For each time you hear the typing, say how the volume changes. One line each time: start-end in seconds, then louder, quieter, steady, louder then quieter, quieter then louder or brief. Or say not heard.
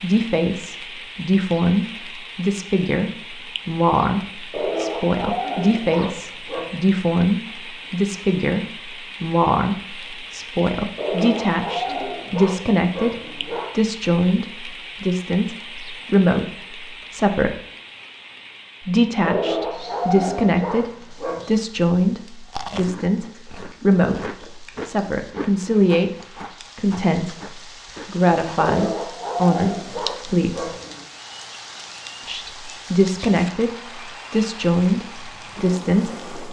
not heard.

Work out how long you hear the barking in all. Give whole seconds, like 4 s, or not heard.
10 s.